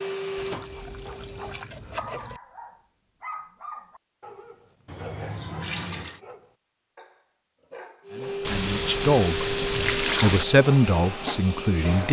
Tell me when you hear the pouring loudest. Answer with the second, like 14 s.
10 s.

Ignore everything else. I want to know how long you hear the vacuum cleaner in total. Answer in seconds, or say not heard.
6 s.